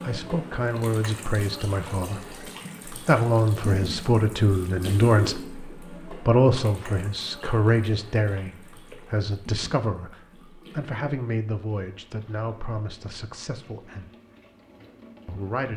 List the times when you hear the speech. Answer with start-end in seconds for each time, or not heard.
0.0-14.1, 15.2-15.7.